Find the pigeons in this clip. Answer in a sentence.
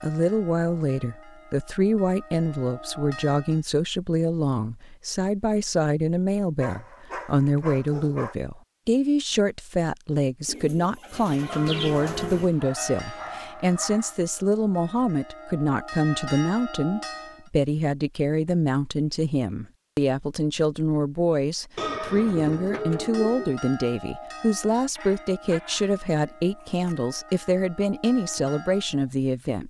You can hear the pigeons from 10.4 to 12.5 s and from 21.8 to 23.6 s.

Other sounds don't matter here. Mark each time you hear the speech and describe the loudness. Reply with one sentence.
The speech can be heard from 0.0 to 29.6 s, at a steady volume.